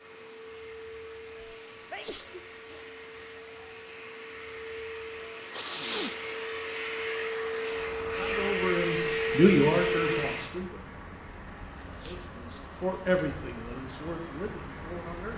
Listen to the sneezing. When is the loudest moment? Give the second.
6 s.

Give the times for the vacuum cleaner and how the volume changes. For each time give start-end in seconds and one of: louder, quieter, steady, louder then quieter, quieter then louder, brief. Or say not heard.
0.0-10.5 louder.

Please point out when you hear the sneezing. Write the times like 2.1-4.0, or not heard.
1.4-2.9, 5.5-6.2, 11.8-12.3.